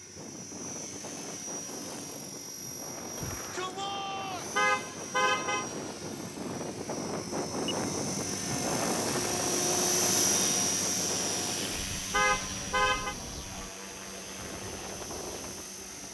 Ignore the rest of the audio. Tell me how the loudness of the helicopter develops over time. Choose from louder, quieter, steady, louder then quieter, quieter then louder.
louder then quieter.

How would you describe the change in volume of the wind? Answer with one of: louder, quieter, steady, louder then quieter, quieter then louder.
louder then quieter.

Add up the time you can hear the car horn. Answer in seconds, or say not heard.
2 s.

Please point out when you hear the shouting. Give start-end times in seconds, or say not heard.
3.1-4.5.